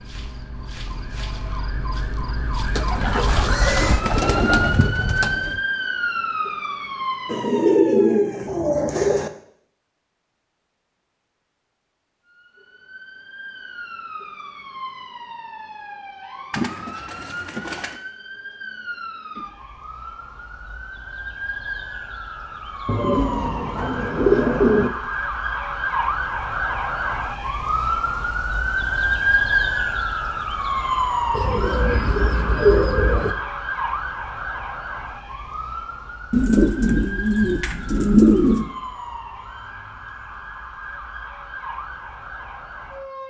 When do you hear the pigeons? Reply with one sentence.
You can hear the pigeons from 2.8 to 5.6 s, from 7.2 to 9.3 s, from 16.5 to 18.0 s, from 22.9 to 24.9 s, from 31.3 to 33.4 s and from 36.3 to 38.6 s.